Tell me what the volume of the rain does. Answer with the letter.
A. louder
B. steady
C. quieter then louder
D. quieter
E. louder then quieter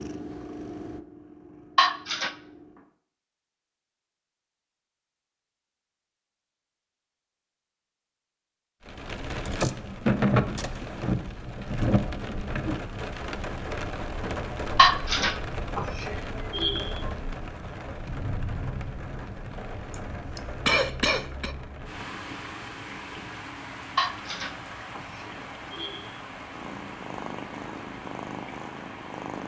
D.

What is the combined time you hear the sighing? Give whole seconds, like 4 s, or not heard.
5 s.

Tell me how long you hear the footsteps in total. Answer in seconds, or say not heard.
not heard.